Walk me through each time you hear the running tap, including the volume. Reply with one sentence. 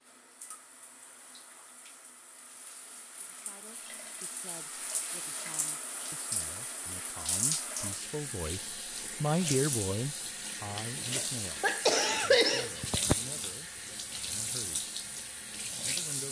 The running tap can be heard from 0.0 to 16.2 s, getting louder.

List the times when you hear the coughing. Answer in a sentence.
You can hear the coughing from 11.2 to 13.2 s.